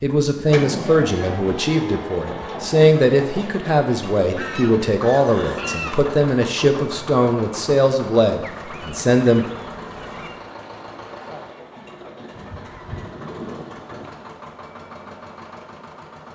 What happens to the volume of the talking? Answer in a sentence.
The volume of the talking stays about the same.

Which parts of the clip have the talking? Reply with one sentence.
You can hear the talking from 0.0 to 9.4 s.